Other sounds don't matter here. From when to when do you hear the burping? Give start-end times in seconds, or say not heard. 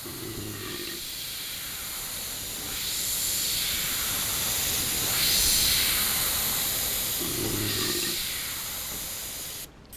0.0-1.1, 7.2-8.3.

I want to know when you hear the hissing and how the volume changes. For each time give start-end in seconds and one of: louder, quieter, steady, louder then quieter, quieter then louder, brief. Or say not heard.
0.0-9.9 louder then quieter.